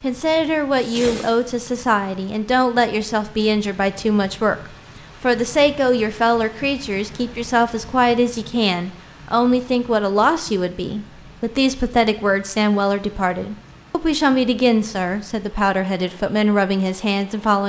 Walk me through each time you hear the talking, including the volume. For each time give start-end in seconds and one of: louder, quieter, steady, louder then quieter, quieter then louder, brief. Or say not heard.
0.0-17.6 steady.